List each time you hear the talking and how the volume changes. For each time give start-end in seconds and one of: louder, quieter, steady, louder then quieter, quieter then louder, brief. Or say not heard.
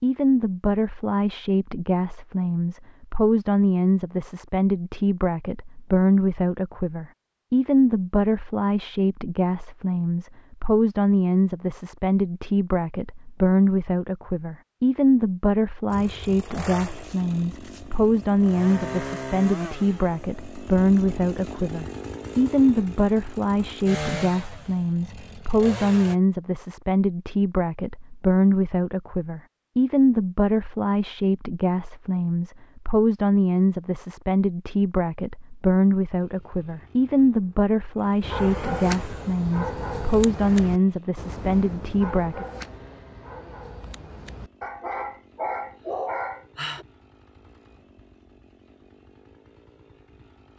0.0-42.5 steady.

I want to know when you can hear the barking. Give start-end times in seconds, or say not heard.
38.2-46.9.